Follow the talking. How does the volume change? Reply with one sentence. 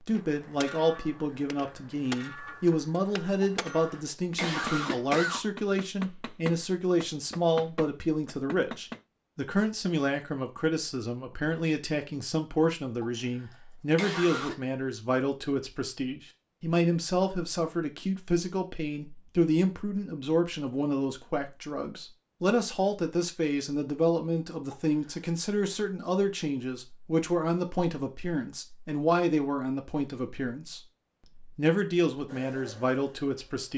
The volume of the talking stays about the same.